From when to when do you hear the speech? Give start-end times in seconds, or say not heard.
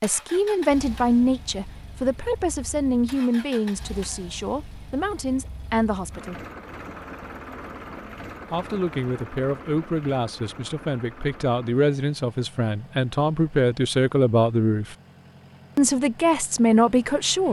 0.0-6.4, 8.5-14.9, 15.8-17.4.